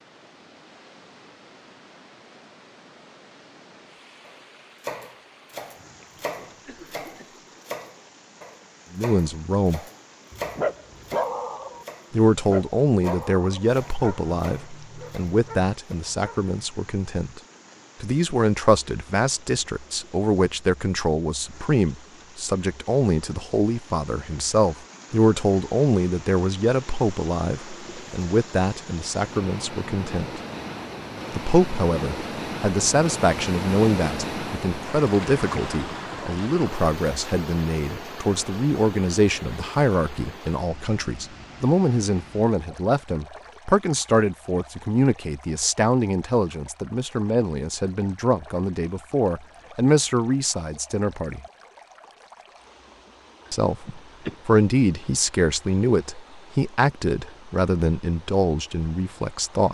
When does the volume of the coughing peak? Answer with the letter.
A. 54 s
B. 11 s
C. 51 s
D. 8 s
A.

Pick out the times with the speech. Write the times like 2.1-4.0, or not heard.
8.9-9.8, 12.1-17.4, 18.0-30.4, 31.3-51.4, 53.5-59.6.